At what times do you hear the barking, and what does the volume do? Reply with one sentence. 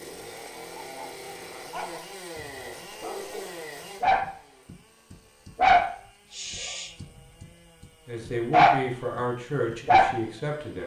The barking can be heard from 0.7 to 8.8 s, getting louder then quieter; and briefly from 9.7 to 10.2 s.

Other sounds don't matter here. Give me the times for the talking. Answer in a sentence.
The talking can be heard from 8.1 to 10.8 s.